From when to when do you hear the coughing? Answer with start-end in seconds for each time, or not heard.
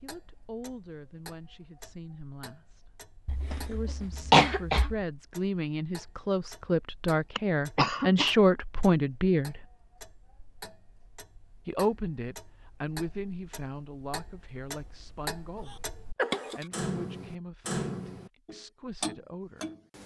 3.2-5.0, 7.3-8.3, 15.6-16.6.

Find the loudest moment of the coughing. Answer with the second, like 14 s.
4 s.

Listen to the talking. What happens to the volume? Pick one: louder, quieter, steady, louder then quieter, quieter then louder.
louder then quieter.